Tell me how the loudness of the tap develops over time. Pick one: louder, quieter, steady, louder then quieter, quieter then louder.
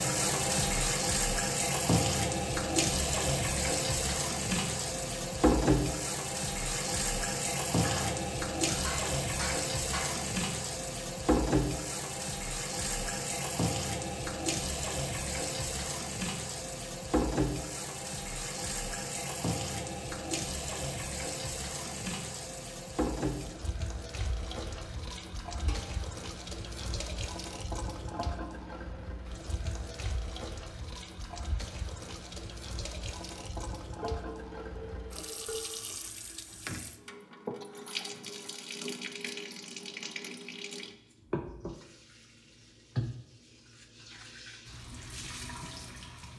quieter.